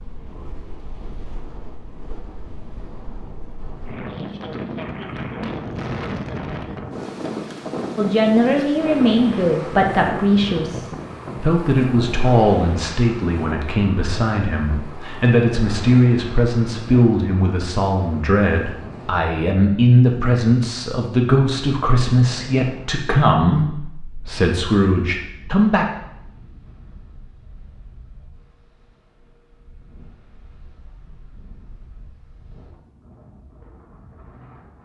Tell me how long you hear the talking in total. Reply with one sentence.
The talking can be heard for 18 seconds in total.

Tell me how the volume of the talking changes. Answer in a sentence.
The loudness of the talking stays about the same.